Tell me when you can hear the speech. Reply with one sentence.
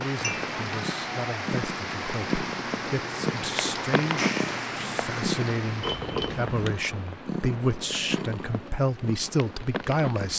The speech can be heard from 0.0 to 10.3 s.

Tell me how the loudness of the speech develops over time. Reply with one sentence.
The loudness of the speech goes up.